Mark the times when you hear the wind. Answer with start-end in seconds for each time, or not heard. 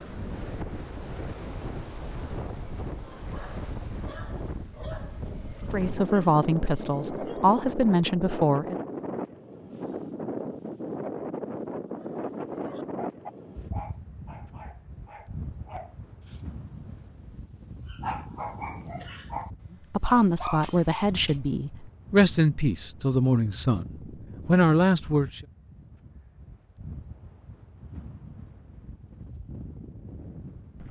0.0-30.8.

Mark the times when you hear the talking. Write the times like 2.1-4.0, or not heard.
5.7-8.8, 19.9-23.9, 24.4-25.4.